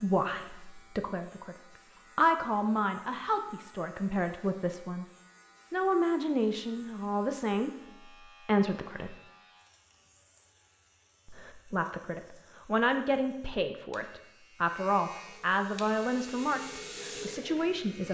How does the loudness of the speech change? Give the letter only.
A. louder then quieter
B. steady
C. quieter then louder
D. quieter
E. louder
B.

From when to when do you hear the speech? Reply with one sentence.
The speech can be heard from 0.0 to 5.0 s, from 5.7 to 9.2 s and from 11.2 to 18.0 s.